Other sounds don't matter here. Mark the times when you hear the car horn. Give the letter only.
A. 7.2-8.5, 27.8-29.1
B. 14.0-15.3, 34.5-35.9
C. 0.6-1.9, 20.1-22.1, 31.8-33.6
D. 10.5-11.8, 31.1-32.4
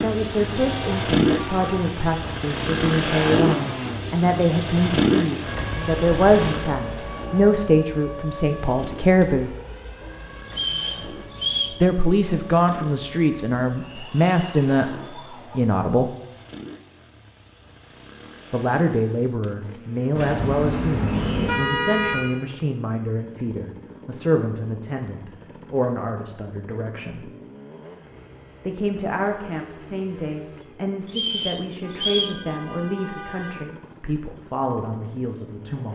C.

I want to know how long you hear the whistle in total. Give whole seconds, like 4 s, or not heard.
3 s.